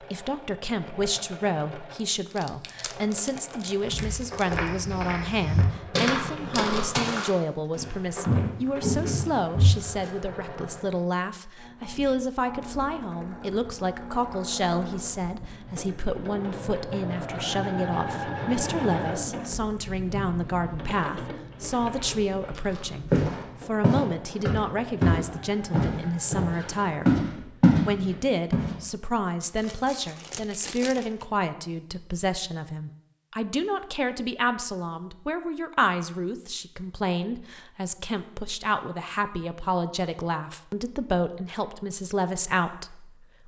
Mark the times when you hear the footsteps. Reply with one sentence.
You can hear the footsteps from 3.9 to 10.1 s and from 22.7 to 28.8 s.